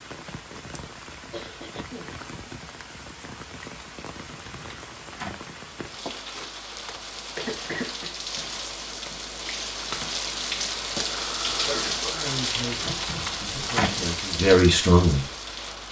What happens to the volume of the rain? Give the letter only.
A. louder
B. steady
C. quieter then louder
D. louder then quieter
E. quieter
A.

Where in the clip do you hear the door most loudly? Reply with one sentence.
The volume of the door peaks at 14 seconds.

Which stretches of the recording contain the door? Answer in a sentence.
The door can be heard from 4.2 to 5.5 s and from 12.8 to 14.1 s.